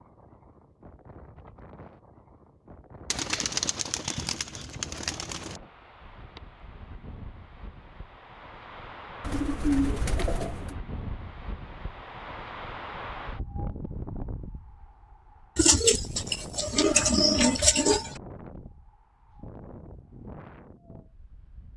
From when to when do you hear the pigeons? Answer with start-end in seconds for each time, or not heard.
3.1-5.5, 9.2-10.8, 15.6-18.1.